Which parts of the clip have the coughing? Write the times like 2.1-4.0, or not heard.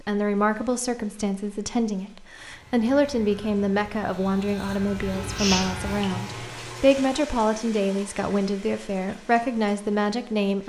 5.1-6.4.